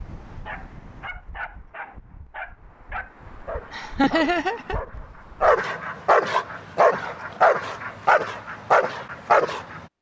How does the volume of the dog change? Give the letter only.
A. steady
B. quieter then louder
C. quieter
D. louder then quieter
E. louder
E.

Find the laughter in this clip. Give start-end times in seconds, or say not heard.
3.7-4.8.